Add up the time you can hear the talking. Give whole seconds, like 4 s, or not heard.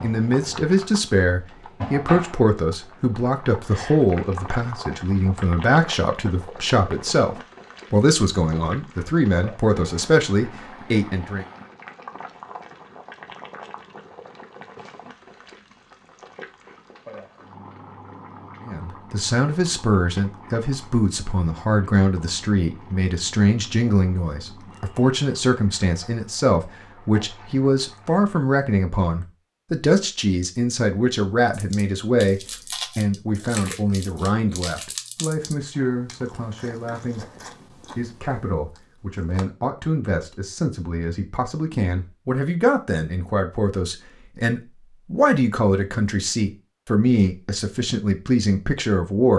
42 s.